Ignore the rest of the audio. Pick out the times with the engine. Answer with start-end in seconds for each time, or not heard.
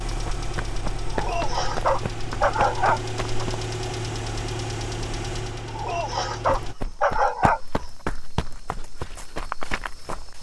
0.0-6.8.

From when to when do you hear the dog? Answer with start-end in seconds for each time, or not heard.
1.1-3.5, 5.7-7.8.